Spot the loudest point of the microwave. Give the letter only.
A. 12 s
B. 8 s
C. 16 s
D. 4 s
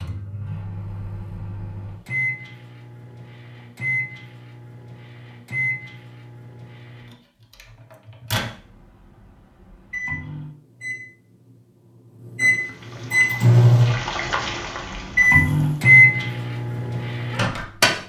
C.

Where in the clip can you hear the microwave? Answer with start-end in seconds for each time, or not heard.
0.0-17.9.